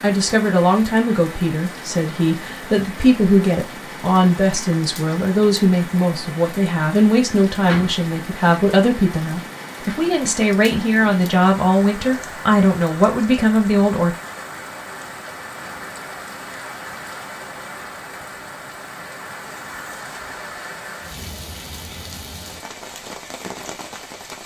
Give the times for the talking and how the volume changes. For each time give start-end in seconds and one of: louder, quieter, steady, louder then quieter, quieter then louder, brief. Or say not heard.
0.0-14.2 steady.